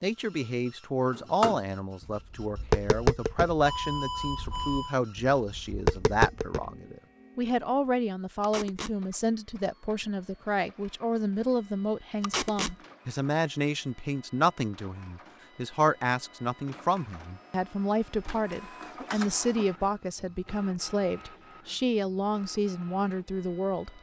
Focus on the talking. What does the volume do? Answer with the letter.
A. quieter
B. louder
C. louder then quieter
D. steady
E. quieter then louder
D.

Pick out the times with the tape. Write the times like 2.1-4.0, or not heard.
8.4-8.9, 12.2-12.8.